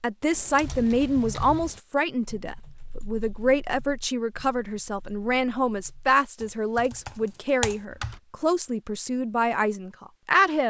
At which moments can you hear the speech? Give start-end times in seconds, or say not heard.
0.0-10.6.